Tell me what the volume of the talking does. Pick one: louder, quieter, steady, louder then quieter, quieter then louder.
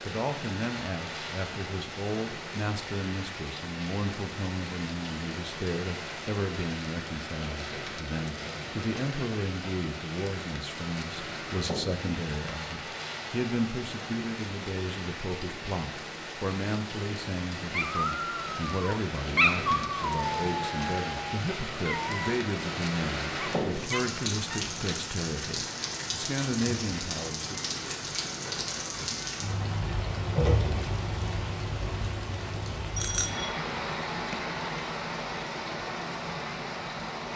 steady.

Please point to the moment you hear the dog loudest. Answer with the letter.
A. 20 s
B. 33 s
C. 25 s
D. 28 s
A.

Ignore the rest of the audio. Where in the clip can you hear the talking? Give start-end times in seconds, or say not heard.
0.0-27.7.